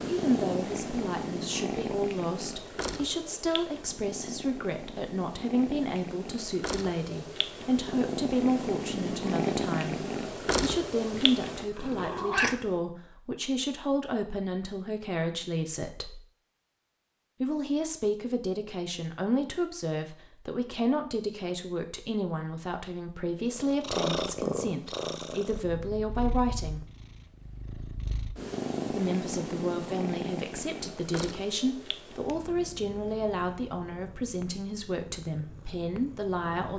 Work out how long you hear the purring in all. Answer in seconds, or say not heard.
26 s.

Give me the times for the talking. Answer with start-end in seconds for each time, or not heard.
0.1-16.2, 17.4-26.9, 28.9-36.7.